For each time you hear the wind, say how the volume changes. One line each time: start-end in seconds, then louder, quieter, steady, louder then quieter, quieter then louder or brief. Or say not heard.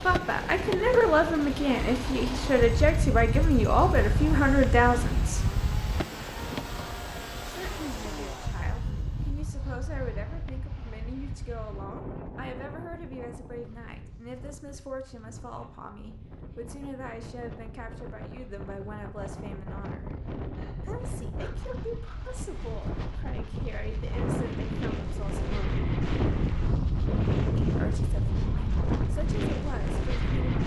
0.0-30.6 quieter then louder.